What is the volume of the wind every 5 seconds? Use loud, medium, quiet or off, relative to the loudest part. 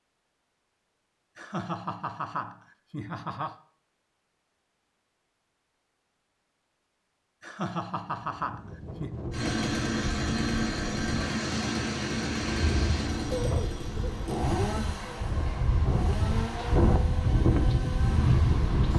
off, quiet, medium, loud.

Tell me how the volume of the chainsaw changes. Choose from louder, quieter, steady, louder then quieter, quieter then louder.
quieter.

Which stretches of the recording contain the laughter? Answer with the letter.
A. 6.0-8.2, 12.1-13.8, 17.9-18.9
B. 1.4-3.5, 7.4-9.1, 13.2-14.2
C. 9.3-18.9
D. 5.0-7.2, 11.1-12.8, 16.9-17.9
B.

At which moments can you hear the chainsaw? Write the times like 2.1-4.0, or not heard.
9.3-18.9.